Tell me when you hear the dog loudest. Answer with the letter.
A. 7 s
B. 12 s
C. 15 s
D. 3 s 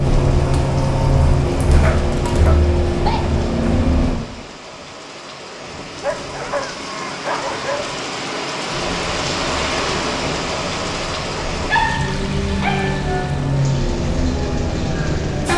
B.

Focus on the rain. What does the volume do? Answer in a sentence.
The volume of the rain goes up, then down.